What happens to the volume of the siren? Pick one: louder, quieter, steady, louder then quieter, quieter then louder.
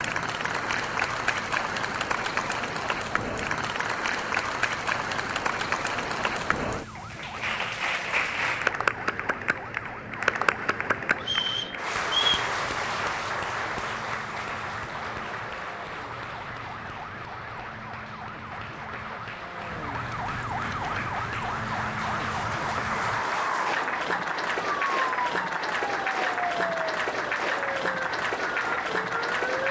louder.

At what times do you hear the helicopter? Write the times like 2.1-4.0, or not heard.
not heard.